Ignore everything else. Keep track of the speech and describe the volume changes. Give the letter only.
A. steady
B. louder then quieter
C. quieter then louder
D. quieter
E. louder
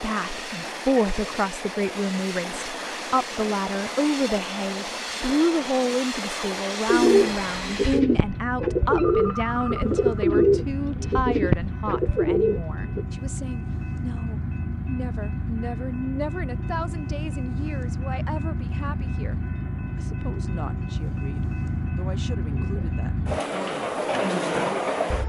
D.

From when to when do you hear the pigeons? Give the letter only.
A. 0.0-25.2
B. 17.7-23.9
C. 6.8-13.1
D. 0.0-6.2
C.